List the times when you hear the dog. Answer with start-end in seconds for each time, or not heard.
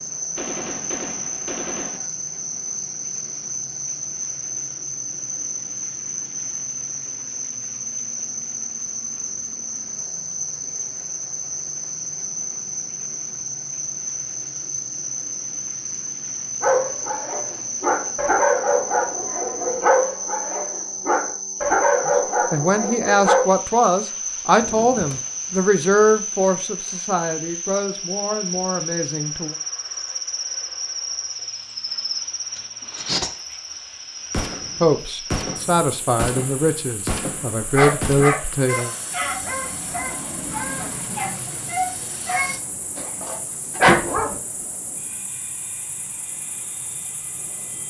16.6-23.4, 37.6-44.4.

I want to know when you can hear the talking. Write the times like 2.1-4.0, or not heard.
22.1-29.6, 34.8-39.0.